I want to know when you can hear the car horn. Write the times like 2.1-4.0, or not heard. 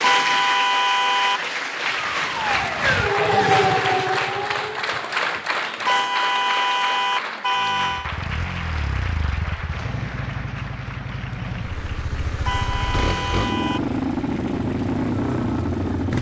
0.0-1.4, 5.8-8.1, 12.4-13.8.